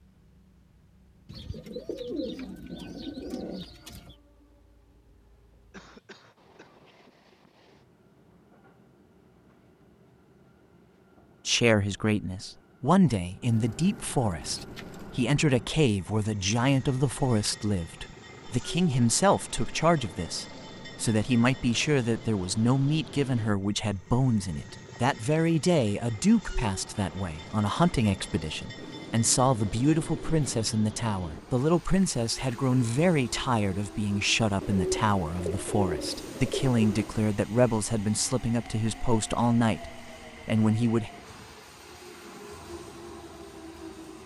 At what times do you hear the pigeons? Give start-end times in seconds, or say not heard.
1.2-4.2, 13.4-15.2, 28.8-30.7, 34.6-37.2.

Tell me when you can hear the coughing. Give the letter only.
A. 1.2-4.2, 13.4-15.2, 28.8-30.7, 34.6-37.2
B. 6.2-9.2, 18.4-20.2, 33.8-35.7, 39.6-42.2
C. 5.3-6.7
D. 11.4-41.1
C.